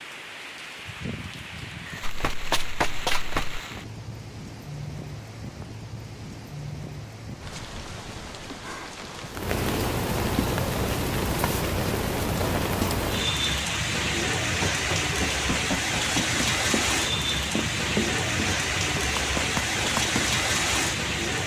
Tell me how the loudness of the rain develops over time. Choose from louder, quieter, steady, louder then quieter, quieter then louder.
louder.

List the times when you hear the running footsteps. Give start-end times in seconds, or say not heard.
2.0-3.6, 14.6-20.2.